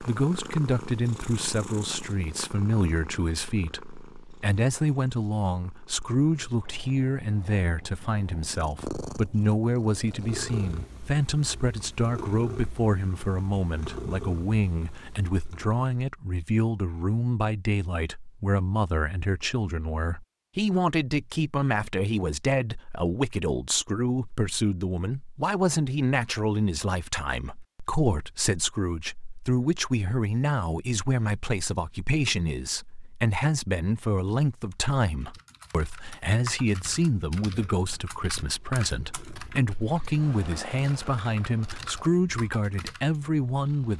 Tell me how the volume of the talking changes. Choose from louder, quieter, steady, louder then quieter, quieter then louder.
steady.